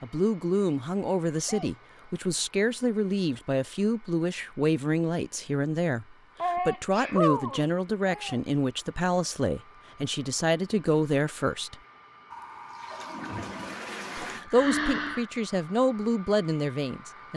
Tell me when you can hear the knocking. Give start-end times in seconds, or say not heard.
not heard.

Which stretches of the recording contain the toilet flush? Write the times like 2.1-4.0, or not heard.
12.3-14.4.